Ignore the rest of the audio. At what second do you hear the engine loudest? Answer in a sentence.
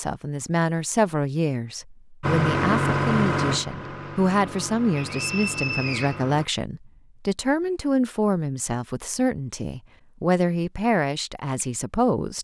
The loudest moment of the engine is at 3 seconds.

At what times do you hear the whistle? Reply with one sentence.
The whistle can be heard from 5.0 to 6.2 s.